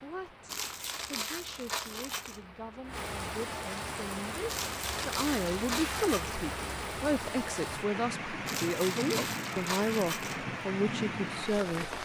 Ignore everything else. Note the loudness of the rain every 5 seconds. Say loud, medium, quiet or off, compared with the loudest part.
medium, loud, loud.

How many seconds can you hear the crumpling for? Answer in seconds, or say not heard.
6 s.